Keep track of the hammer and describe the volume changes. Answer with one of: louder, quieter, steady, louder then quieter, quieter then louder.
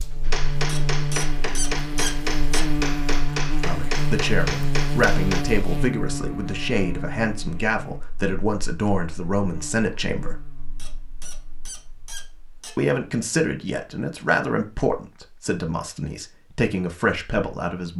steady.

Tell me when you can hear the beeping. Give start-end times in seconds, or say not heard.
not heard.